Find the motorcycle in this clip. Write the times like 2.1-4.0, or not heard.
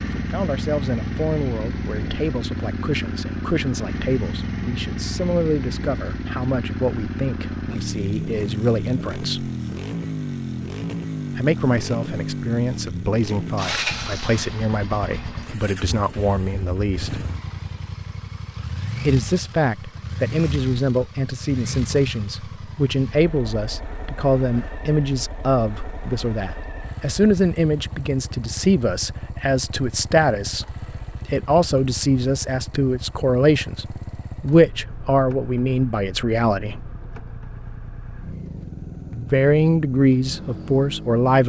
0.0-41.4.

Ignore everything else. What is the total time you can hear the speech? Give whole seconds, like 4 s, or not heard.
35 s.